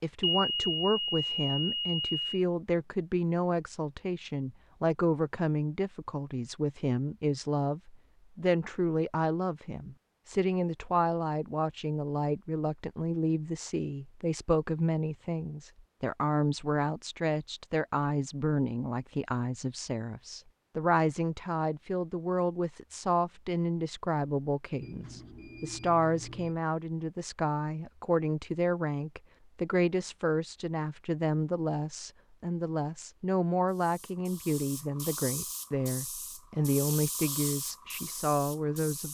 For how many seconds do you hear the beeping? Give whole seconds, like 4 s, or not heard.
4 s.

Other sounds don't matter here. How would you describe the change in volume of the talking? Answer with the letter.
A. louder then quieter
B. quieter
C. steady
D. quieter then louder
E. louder
C.